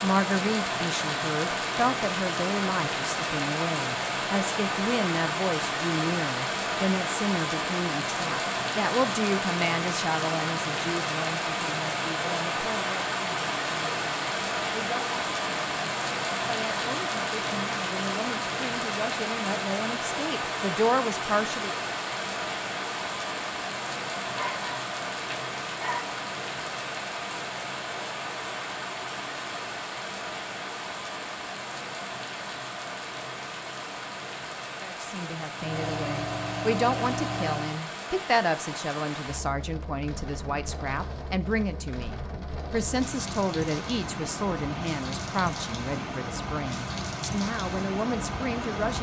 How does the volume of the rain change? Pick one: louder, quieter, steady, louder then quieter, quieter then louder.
quieter.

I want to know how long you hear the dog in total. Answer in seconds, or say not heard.
2 s.